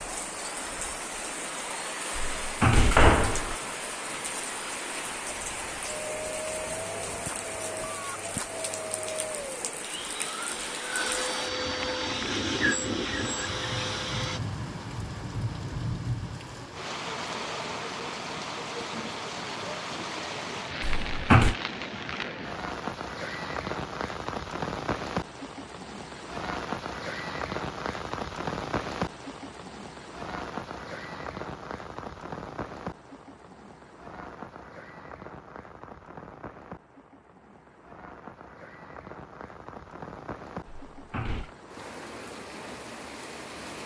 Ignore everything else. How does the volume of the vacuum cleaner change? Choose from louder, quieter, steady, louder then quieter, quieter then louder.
louder.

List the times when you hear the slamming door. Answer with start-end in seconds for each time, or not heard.
2.1-3.5, 20.8-21.6, 40.6-41.5.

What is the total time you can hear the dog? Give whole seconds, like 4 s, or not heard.
not heard.